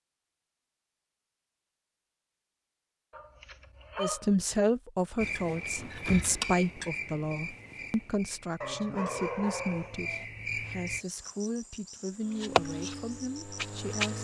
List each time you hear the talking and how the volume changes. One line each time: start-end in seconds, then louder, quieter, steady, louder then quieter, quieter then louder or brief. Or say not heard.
4.0-14.1 quieter.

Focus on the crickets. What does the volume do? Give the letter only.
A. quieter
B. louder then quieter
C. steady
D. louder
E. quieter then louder
E.